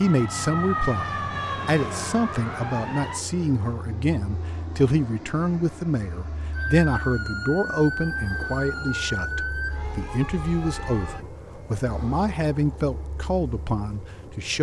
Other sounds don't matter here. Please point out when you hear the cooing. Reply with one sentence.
You can't hear the cooing here.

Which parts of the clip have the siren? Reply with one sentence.
You can hear the siren from 0.0 to 3.2 s and from 6.5 to 11.2 s.